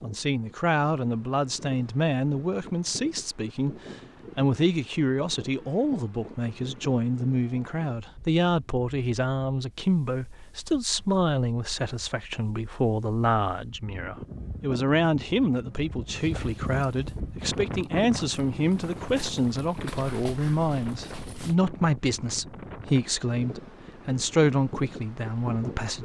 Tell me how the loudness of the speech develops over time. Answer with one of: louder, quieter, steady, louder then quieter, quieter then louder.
steady.